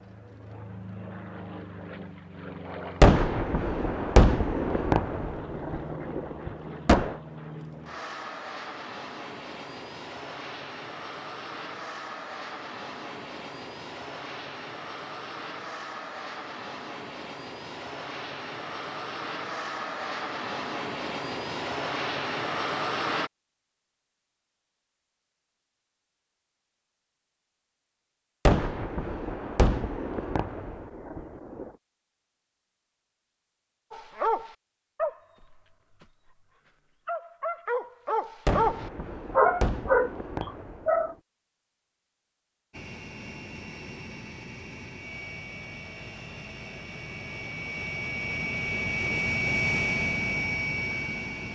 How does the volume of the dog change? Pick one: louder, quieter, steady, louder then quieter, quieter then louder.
quieter then louder.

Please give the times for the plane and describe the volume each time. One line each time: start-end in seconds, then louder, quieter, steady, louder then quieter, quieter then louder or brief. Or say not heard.
0.0-23.3 louder
42.7-51.4 louder.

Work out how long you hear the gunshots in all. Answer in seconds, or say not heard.
10 s.